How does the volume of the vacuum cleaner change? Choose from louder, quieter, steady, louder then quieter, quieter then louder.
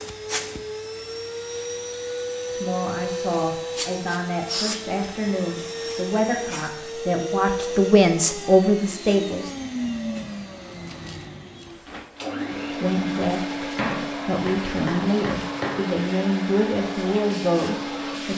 steady.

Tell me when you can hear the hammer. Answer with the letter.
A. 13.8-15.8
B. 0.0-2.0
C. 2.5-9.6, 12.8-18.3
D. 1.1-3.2
A.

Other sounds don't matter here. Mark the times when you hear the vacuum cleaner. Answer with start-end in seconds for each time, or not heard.
0.0-18.3.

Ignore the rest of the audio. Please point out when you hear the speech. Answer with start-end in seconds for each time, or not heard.
2.5-9.6, 12.8-18.3.